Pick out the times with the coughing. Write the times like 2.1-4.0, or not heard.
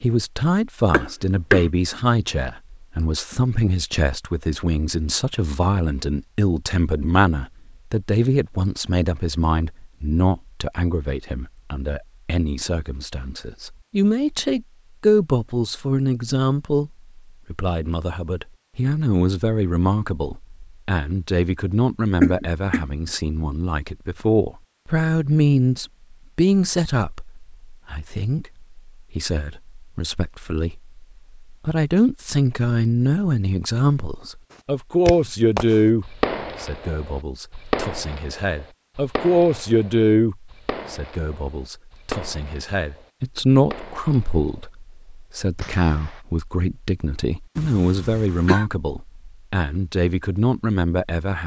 0.9-1.6, 22.2-22.9, 47.5-48.6.